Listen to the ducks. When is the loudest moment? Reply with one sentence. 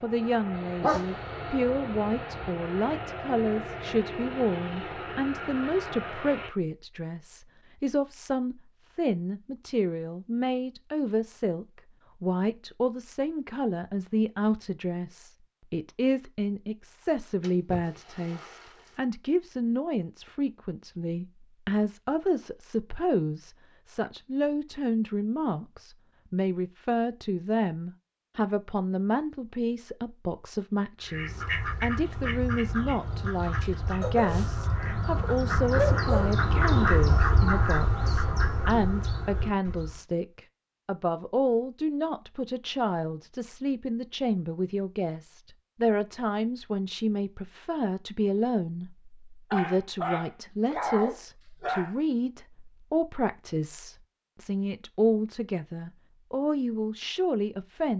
The volume of the ducks peaks at 37 seconds.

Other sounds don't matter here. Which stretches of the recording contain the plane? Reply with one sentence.
You can hear the plane from 0.0 to 6.5 s.